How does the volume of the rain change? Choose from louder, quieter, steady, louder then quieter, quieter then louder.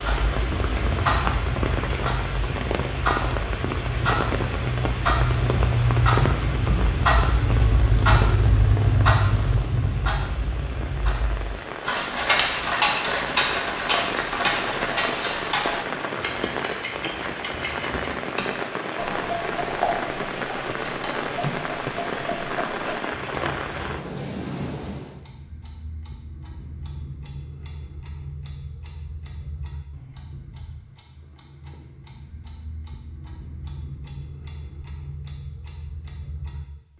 steady.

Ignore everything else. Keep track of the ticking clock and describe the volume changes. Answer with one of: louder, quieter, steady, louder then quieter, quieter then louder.
quieter.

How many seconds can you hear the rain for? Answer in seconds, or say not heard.
25 s.